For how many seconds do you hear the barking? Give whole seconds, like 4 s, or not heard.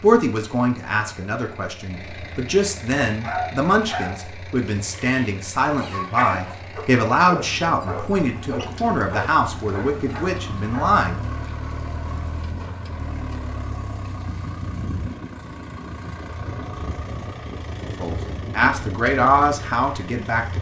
8 s.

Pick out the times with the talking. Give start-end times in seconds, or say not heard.
0.0-11.2, 18.0-20.5.